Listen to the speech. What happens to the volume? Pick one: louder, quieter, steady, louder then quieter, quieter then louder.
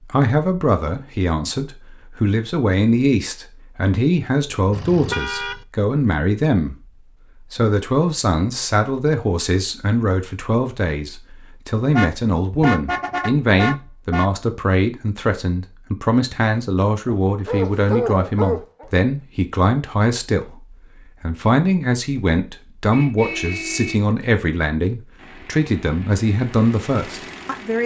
steady.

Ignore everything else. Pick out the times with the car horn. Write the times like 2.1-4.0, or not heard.
4.7-5.6, 11.9-14.3, 22.9-24.0.